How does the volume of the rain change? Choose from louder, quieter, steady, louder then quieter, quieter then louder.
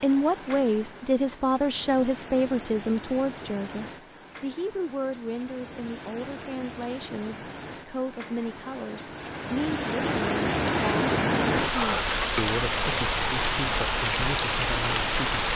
louder.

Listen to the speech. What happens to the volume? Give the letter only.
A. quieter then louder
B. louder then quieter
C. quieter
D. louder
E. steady
C.